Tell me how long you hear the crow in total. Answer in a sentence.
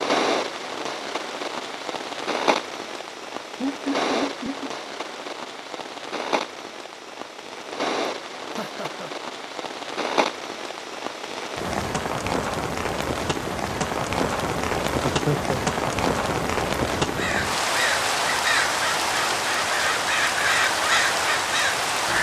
The crow can be heard for 5 seconds in total.